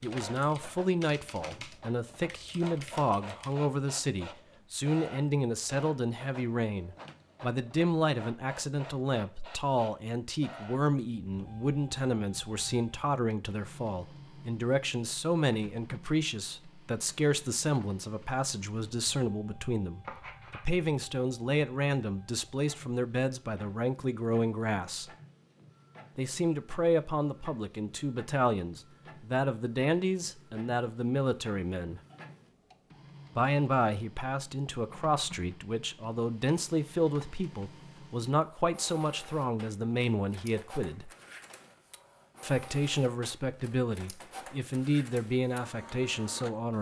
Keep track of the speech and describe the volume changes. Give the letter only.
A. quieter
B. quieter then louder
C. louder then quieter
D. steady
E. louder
D.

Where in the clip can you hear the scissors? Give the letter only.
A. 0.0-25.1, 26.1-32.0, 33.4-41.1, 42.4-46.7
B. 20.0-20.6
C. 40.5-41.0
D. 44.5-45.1
B.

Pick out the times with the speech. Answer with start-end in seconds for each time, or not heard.
0.0-25.1, 26.1-32.0, 33.4-41.1, 42.4-46.7.